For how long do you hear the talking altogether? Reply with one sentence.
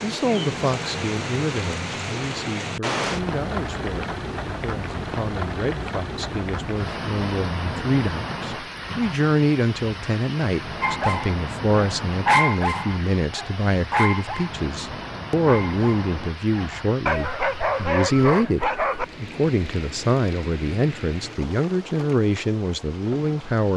The talking can be heard for 24 seconds in total.